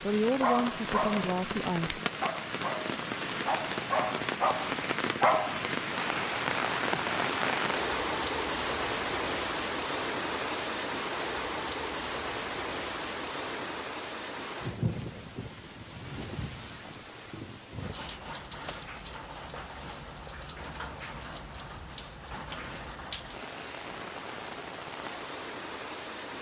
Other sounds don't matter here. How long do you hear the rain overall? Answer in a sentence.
You can hear the rain for 26 seconds altogether.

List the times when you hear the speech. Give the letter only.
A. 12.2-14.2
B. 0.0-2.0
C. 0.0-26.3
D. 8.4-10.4
B.